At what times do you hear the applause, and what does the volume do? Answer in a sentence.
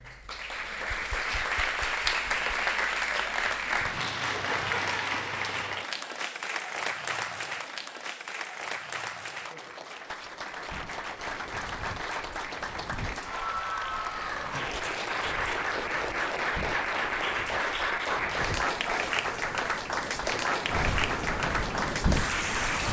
You can hear the applause from 0.0 to 22.8 s, getting quieter then louder.